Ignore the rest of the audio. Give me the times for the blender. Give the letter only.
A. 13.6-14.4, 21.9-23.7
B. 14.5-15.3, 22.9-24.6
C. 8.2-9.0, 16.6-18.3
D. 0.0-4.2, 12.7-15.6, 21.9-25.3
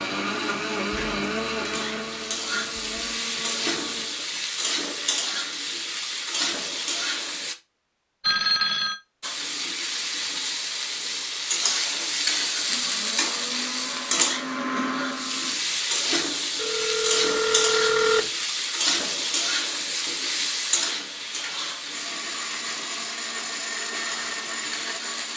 D.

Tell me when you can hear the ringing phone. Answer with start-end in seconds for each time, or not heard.
8.2-9.0, 16.6-18.3.